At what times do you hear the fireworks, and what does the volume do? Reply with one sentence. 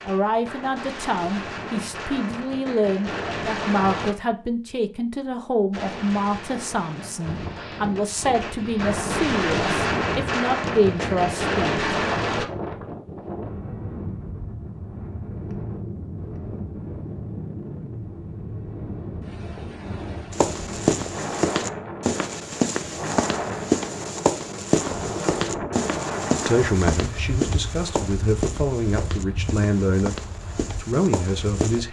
You can hear the fireworks from 0.0 to 4.2 s, getting louder; and from 5.7 to 12.4 s, getting louder.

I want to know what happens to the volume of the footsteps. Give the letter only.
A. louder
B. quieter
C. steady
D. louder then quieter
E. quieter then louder
B.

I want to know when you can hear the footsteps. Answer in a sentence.
You can hear the footsteps from 20.3 to 31.8 s.